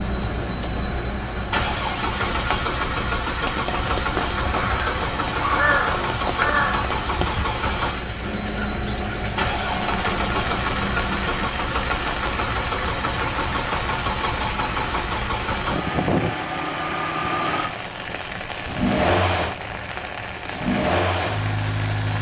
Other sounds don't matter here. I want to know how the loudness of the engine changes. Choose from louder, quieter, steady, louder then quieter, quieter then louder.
steady.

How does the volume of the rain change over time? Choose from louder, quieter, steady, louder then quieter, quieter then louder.
steady.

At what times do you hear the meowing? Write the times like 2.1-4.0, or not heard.
not heard.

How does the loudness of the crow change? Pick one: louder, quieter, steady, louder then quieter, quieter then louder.
louder then quieter.